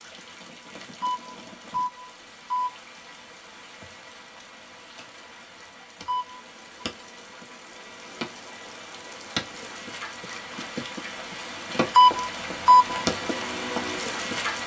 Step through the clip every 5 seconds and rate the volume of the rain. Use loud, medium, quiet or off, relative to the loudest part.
quiet, medium, loud.